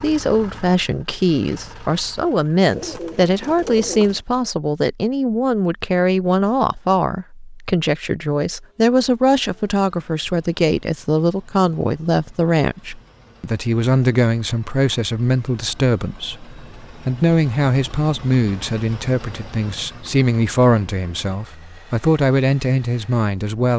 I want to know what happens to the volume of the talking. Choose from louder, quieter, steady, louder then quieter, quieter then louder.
steady.